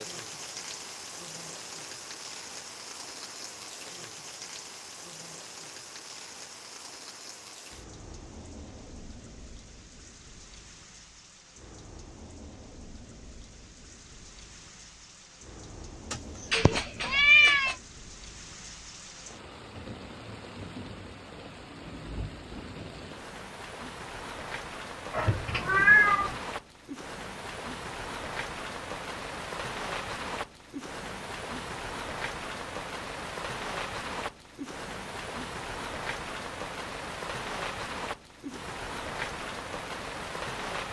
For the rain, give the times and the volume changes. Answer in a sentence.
The rain can be heard from 0.0 to 40.8 s, getting quieter then louder.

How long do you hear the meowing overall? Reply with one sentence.
The meowing can be heard for 3 seconds in total.